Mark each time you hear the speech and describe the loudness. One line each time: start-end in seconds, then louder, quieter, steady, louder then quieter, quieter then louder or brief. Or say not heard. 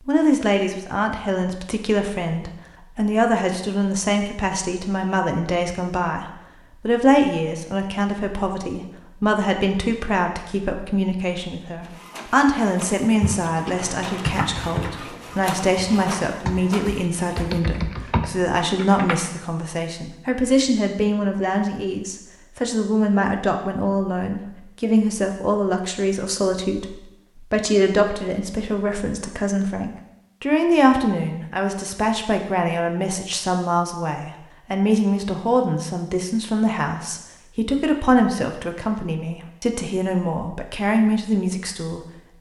0.1-42.3 steady.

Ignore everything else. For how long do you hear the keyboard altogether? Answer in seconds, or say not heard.
6 s.